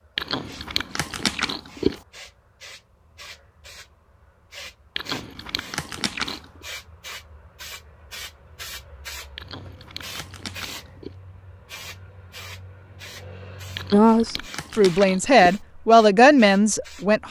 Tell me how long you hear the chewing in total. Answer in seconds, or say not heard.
7 s.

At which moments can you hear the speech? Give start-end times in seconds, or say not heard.
13.9-17.2.